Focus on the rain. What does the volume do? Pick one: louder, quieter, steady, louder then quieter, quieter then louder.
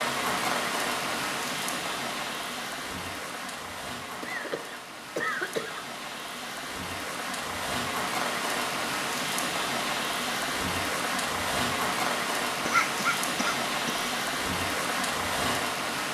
quieter then louder.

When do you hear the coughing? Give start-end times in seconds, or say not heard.
4.2-5.8, 12.7-14.1.